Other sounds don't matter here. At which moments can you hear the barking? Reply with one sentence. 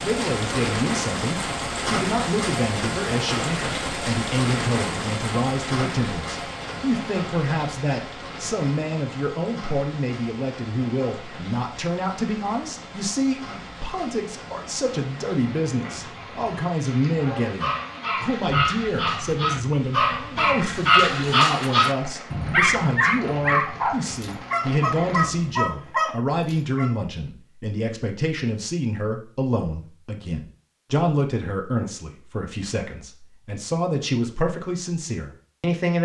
The barking can be heard from 17.1 to 26.9 s.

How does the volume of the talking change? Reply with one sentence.
The loudness of the talking stays about the same.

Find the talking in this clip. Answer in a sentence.
The talking can be heard from 0.0 to 35.9 s.